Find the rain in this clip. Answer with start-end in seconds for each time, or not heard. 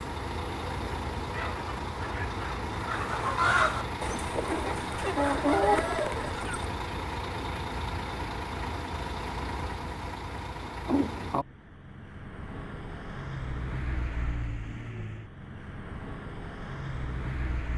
not heard.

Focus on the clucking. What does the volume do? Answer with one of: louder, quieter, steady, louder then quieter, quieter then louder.
louder.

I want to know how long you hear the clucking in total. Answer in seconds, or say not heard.
5 s.